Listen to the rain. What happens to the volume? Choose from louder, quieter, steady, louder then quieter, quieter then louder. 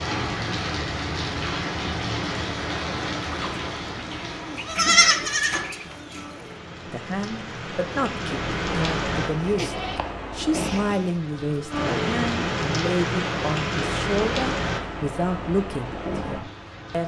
quieter then louder.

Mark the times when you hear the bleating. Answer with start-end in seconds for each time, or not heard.
3.3-6.5, 9.2-11.2.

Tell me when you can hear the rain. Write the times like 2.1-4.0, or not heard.
0.0-17.0.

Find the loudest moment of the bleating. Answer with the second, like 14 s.
5 s.